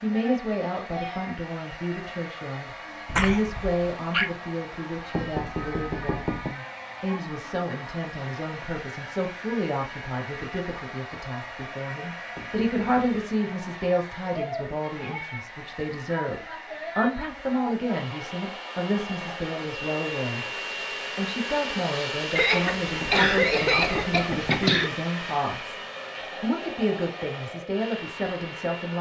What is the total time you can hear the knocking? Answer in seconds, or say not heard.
4 s.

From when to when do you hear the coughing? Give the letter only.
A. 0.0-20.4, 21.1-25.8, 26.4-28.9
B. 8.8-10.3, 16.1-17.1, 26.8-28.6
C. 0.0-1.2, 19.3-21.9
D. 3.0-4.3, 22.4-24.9
D.